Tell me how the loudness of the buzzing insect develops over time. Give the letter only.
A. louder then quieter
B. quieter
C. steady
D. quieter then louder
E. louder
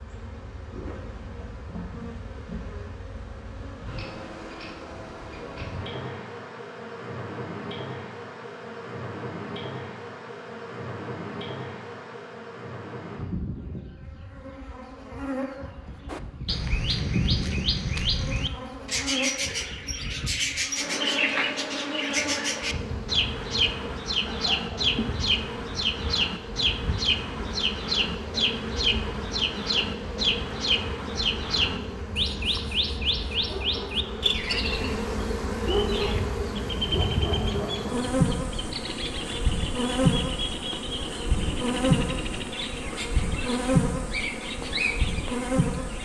E.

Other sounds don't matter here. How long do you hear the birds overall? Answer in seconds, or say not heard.
30 s.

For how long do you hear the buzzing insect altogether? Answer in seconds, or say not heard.
46 s.